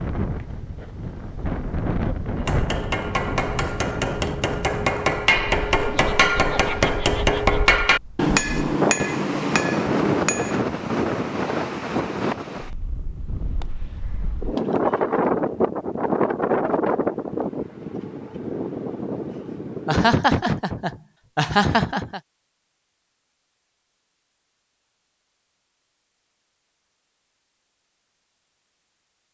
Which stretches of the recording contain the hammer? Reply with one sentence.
The hammer can be heard from 2.4 to 10.7 s.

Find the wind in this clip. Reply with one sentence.
You can hear the wind from 0.0 to 20.1 s.